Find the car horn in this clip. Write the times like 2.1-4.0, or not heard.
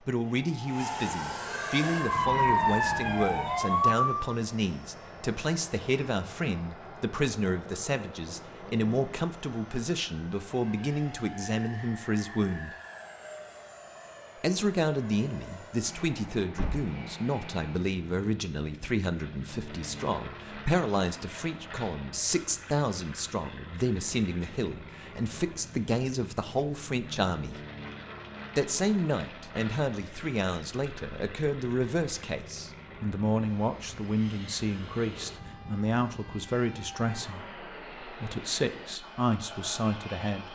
not heard.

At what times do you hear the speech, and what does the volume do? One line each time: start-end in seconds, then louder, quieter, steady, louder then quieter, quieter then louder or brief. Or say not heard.
0.1-12.8 steady
14.4-27.6 steady
28.6-40.5 steady.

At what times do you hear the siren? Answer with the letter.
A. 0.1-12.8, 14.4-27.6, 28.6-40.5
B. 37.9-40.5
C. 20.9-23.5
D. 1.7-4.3
D.